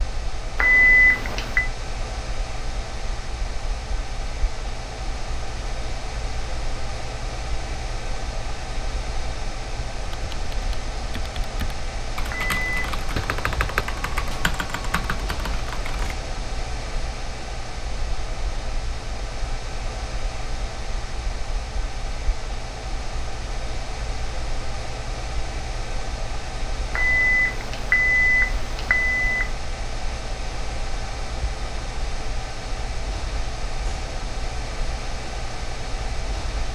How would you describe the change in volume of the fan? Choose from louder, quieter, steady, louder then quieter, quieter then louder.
steady.